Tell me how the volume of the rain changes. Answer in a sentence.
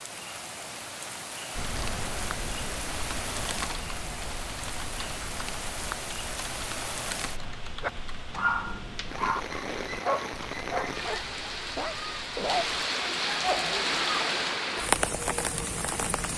The volume of the rain goes up.